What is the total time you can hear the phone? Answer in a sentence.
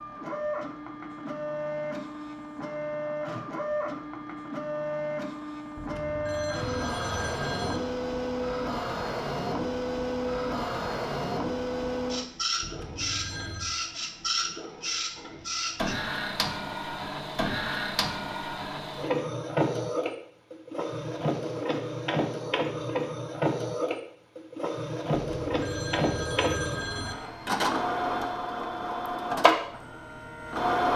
The phone can be heard for 5 seconds in total.